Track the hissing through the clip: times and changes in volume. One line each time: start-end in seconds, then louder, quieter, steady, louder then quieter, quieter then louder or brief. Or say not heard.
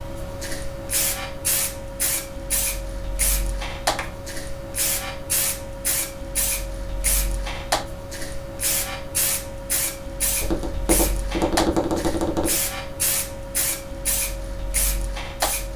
0.0-15.7 steady.